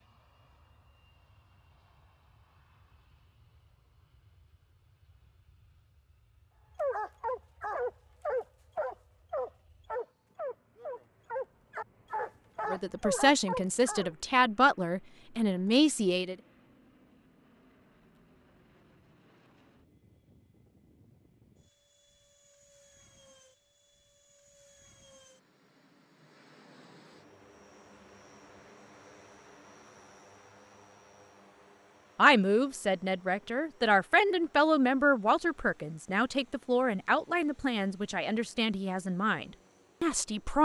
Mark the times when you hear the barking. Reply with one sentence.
The barking can be heard from 6.8 to 14.2 s.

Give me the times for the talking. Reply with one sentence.
You can hear the talking from 12.7 to 16.4 s and from 32.1 to 40.5 s.